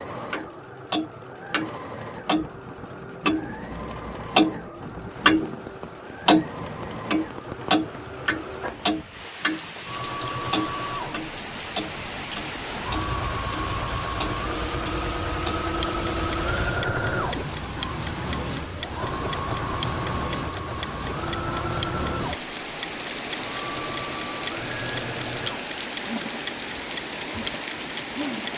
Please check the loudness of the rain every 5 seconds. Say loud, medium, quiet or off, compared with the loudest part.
off, medium, loud, loud, loud, loud.